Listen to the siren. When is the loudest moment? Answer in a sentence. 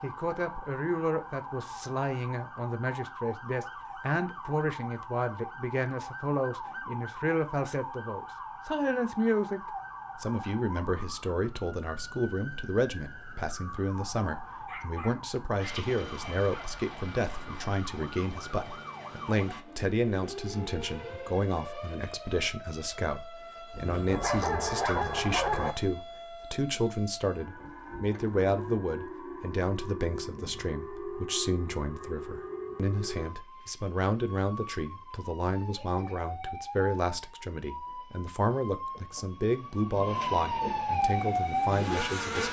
The loudest moment of the siren is at 41 seconds.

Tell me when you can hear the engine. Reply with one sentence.
You can hear the engine from 41.0 to 42.4 s.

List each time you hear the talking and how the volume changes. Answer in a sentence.
The talking can be heard from 0.0 to 9.6 s, at a steady volume; and from 10.2 to 42.4 s, at a steady volume.